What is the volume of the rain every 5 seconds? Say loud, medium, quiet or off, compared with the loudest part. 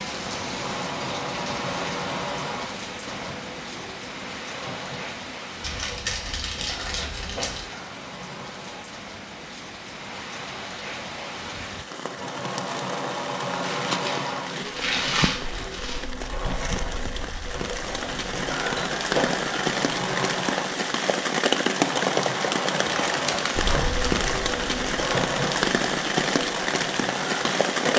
medium, quiet, medium, medium, loud, loud.